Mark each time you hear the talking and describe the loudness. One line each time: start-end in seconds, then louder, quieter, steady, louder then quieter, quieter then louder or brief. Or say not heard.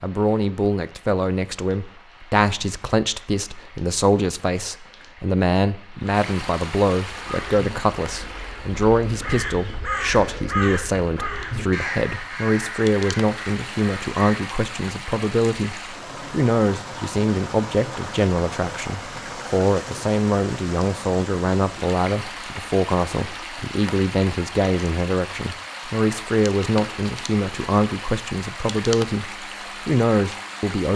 0.0-30.9 steady.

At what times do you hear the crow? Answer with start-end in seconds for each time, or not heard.
7.0-14.4.